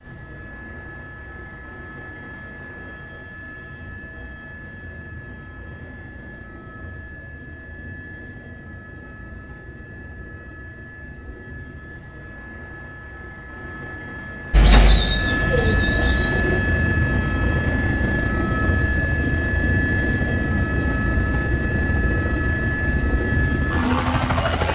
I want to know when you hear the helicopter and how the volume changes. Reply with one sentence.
You can hear the helicopter from 0.0 to 24.7 s, getting louder.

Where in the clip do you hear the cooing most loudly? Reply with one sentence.
The volume of the cooing peaks at 15 seconds.